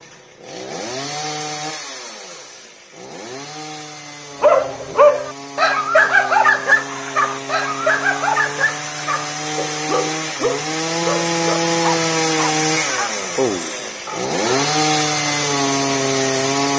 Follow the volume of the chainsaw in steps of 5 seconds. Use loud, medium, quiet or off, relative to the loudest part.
quiet, medium, loud, loud.